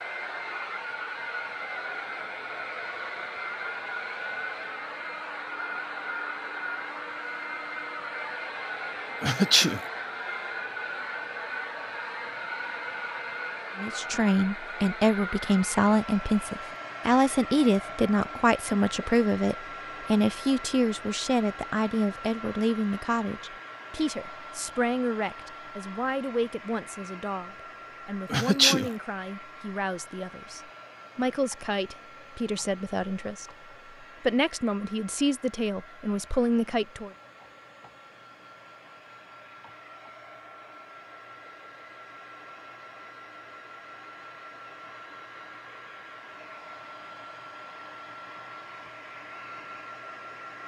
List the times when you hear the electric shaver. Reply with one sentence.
You can't hear the electric shaver here.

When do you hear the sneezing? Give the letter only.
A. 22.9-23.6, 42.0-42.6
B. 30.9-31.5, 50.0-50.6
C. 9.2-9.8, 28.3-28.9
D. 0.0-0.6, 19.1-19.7
C.